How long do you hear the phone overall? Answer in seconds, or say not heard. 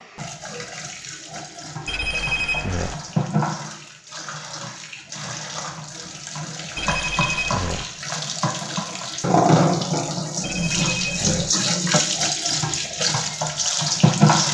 3 s.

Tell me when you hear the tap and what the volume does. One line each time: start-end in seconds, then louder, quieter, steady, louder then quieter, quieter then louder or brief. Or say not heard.
0.0-14.4 louder.